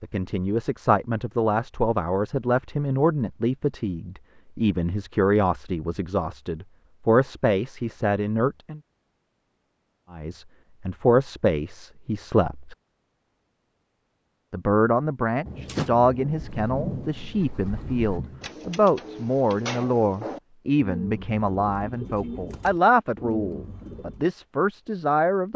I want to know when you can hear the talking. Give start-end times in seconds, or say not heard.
0.0-8.8, 10.1-12.8, 14.5-25.5.